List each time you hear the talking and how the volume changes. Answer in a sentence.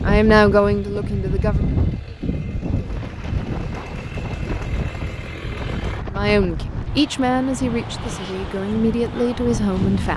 You can hear the talking briefly from 0.0 to 1.8 s; and from 6.1 to 10.1 s, getting quieter then louder.